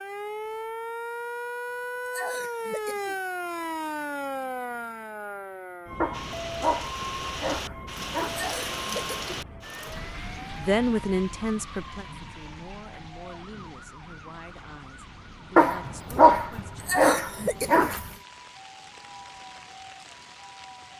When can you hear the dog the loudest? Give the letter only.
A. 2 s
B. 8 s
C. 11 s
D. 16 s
D.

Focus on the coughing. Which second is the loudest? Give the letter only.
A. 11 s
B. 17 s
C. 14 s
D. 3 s
B.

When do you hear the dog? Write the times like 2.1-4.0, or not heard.
6.0-8.5, 15.6-18.1.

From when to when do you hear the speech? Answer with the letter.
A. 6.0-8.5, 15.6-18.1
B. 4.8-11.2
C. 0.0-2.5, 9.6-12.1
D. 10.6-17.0
D.